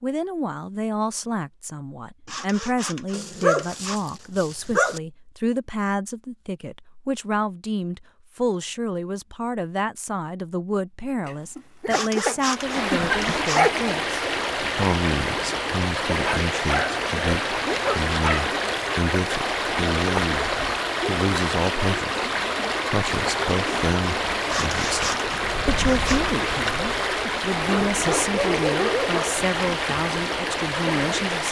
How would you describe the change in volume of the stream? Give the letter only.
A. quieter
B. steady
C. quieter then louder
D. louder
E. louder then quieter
B.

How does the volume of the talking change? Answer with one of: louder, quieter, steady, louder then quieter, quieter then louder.
steady.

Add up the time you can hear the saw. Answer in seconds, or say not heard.
5 s.